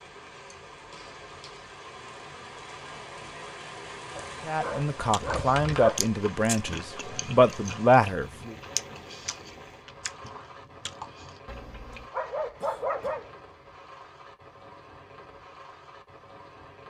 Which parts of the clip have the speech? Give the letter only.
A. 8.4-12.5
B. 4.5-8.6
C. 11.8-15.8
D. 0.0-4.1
B.